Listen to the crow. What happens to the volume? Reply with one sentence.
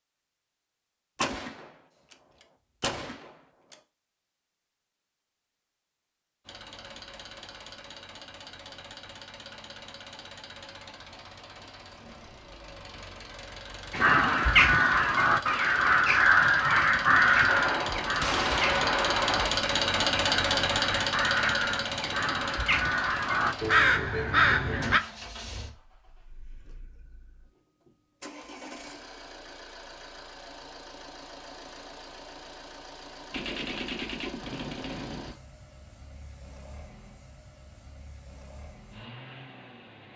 The volume of the crow goes down, then up.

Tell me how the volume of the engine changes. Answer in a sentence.
The loudness of the engine goes up, then down.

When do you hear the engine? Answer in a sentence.
The engine can be heard from 6.5 to 40.1 s.